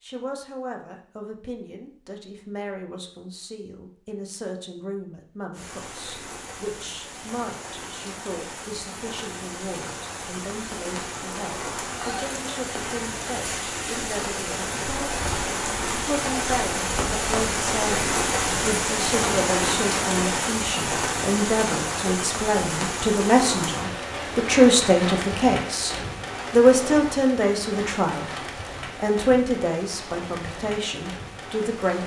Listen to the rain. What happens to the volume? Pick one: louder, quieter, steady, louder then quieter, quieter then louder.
louder then quieter.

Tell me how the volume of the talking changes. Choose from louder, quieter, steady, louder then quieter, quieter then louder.
louder.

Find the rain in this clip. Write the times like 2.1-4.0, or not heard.
5.5-32.0.